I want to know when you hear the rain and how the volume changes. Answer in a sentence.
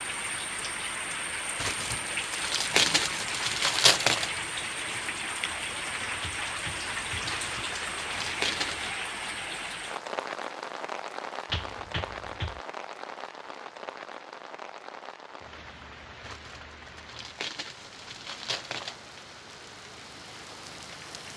The rain can be heard from 0.0 to 21.3 s, getting quieter.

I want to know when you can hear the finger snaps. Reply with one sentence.
You can hear the finger snaps from 6.2 to 7.3 s and from 11.5 to 12.6 s.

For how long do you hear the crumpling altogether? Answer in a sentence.
You can hear the crumpling for 7 seconds altogether.